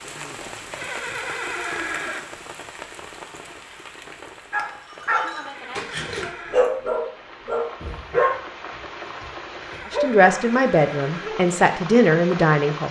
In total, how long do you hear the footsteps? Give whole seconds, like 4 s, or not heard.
not heard.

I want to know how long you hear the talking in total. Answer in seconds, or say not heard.
3 s.